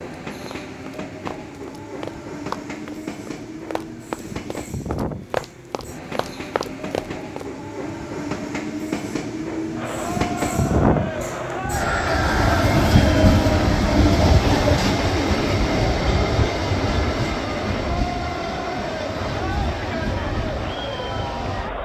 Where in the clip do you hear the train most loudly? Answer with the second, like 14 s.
13 s.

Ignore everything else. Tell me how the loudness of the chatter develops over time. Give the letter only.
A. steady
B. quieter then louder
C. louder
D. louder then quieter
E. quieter
A.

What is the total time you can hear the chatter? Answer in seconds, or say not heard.
12 s.